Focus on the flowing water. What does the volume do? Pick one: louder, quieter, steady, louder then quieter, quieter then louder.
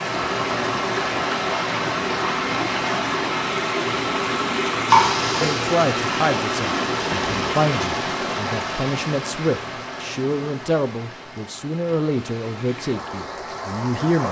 quieter.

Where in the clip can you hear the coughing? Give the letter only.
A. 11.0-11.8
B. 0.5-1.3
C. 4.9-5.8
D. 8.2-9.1
C.